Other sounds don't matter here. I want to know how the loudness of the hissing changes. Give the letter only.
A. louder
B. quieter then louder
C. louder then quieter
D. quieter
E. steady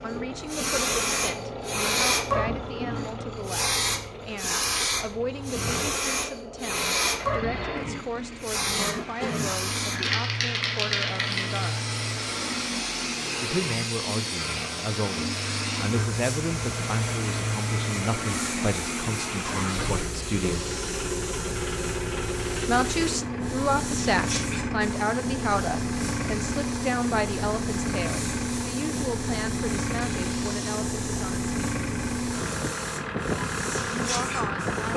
D.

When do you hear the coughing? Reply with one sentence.
The coughing can be heard from 8.7 to 9.6 s.